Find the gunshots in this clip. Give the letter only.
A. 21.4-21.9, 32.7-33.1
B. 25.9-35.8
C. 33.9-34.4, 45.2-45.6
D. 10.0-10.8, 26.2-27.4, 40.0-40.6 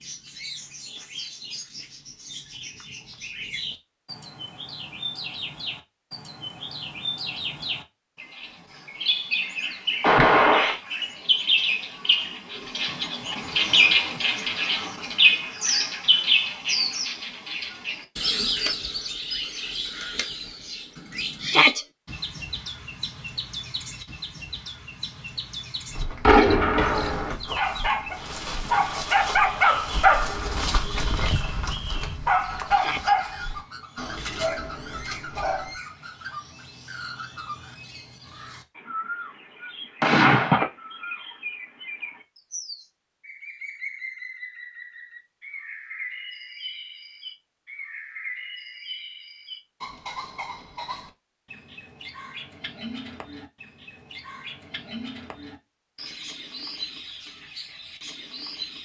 D.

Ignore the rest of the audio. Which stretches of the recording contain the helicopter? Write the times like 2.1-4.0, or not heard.
not heard.